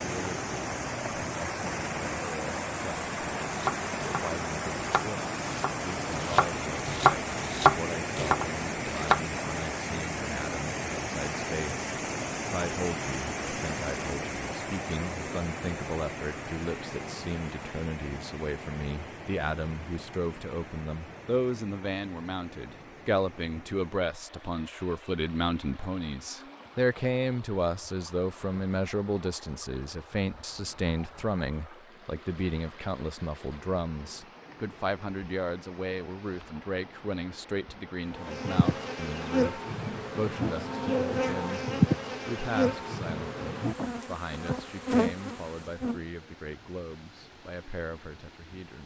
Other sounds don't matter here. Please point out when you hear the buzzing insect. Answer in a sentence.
You can hear the buzzing insect from 38.0 to 46.0 s.